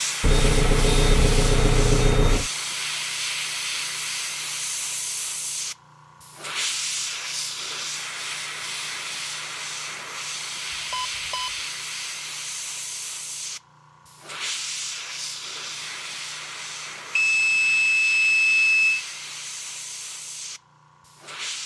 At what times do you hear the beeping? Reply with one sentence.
The beeping can be heard from 0.2 to 2.5 s, from 10.7 to 11.5 s and from 17.1 to 19.1 s.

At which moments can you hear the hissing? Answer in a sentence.
You can hear the hissing from 0.0 to 21.6 s.